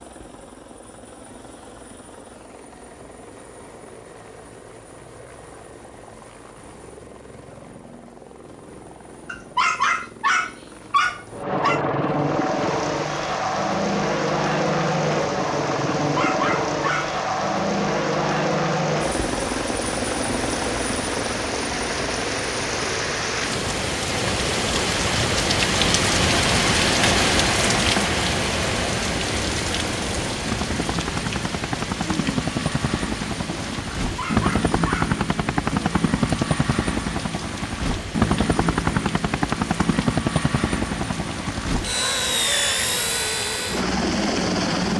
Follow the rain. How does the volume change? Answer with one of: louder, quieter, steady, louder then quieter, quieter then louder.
louder then quieter.